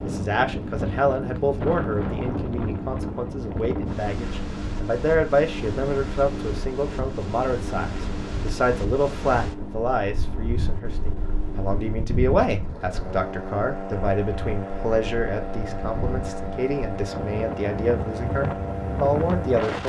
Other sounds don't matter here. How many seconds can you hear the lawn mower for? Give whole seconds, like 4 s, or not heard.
20 s.